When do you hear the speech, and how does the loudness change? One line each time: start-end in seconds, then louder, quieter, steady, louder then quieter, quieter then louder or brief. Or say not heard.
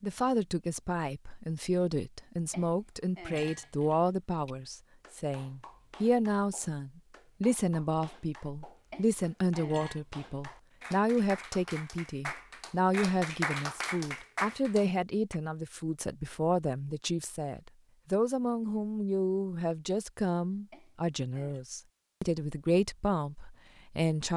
0.0-24.3 steady.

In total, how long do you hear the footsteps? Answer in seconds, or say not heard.
not heard.